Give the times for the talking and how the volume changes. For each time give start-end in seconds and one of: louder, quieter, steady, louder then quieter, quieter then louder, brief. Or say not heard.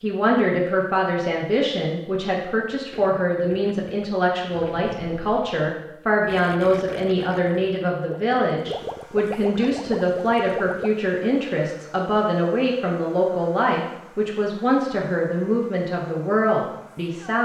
0.0-17.4 steady.